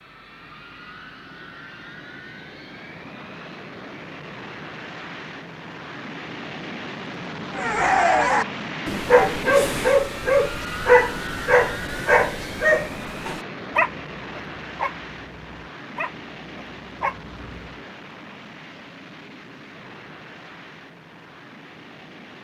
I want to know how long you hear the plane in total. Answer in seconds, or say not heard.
22 s.